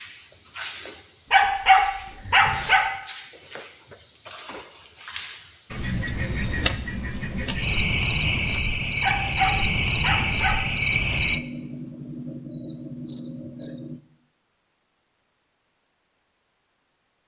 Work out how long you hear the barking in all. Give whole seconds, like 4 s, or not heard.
3 s.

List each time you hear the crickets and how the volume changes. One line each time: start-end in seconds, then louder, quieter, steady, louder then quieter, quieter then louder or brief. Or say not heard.
0.0-14.0 steady.